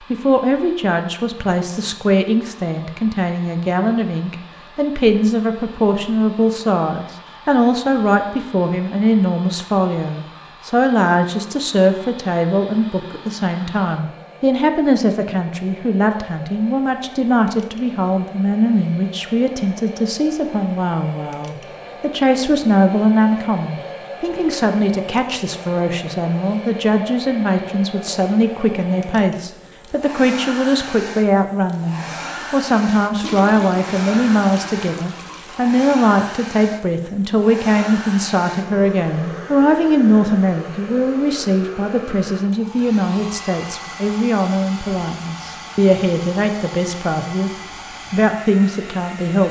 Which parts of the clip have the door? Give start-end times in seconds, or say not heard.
not heard.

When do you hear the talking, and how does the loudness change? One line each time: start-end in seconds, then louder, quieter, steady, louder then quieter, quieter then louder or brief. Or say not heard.
0.0-49.4 steady.